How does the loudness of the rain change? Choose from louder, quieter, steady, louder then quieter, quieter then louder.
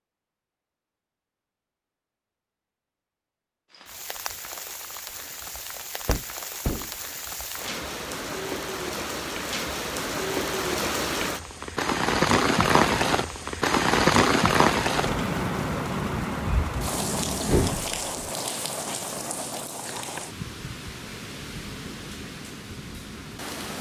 louder then quieter.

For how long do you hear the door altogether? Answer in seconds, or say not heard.
2 s.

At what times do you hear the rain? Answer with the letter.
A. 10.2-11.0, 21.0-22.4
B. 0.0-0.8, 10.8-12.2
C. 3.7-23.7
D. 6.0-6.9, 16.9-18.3
C.